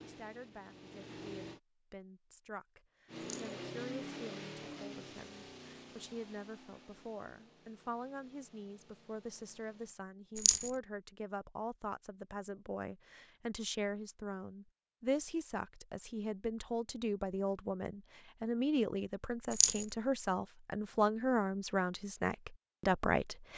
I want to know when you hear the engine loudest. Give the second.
4 s.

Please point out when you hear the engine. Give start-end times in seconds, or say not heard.
0.0-1.6, 3.0-9.9.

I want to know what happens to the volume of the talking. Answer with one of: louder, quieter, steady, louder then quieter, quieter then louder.
louder.